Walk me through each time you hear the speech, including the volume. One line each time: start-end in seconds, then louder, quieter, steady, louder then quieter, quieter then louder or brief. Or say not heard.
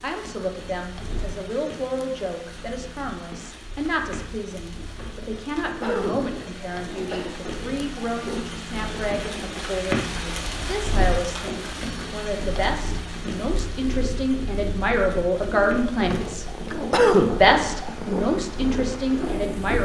0.0-16.4 louder
17.4-19.8 brief.